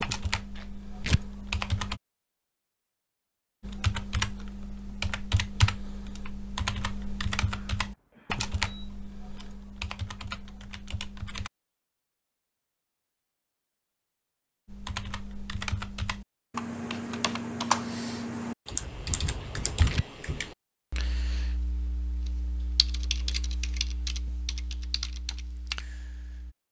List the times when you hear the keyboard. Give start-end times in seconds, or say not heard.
0.0-2.0, 3.6-11.5, 14.7-26.6.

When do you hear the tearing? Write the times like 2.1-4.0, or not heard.
0.6-1.2, 19.4-20.1.